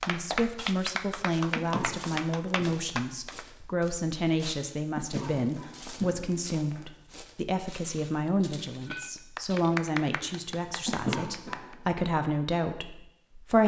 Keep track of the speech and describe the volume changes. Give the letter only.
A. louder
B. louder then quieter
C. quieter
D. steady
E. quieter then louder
D.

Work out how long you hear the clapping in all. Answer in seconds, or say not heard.
6 s.